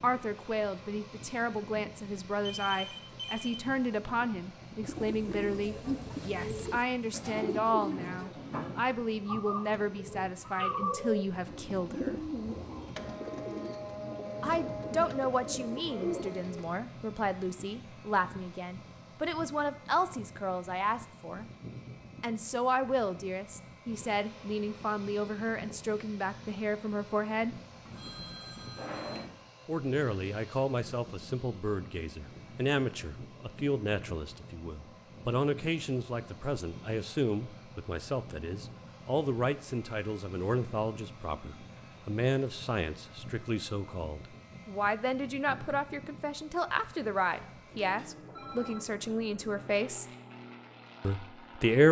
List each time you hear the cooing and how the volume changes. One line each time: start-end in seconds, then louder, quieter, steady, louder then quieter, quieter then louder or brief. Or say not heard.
4.8-16.7 steady.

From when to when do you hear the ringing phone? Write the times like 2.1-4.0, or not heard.
2.5-3.6, 27.9-29.2, 47.5-48.8.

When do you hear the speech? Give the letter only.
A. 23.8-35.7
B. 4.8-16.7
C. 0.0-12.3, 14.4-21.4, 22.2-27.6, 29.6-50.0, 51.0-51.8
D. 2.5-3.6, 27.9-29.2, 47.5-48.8
C.